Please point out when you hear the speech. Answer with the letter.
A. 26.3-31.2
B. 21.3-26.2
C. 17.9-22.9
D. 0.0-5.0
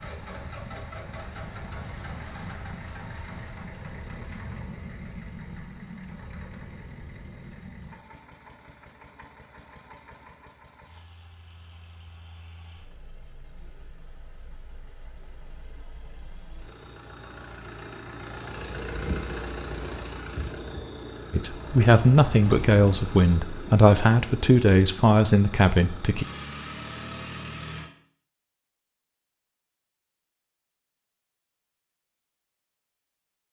B.